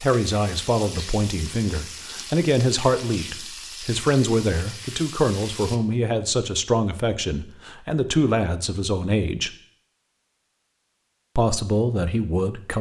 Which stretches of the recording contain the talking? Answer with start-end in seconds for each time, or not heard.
0.0-9.6, 11.3-12.7.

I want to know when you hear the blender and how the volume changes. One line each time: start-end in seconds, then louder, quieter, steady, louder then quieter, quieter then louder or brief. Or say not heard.
not heard.